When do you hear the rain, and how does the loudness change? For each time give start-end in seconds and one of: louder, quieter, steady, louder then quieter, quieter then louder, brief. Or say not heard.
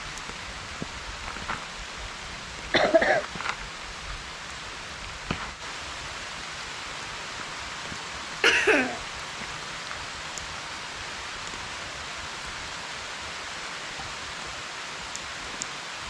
0.0-16.0 steady.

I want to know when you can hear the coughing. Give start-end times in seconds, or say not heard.
2.7-3.2, 8.4-9.0.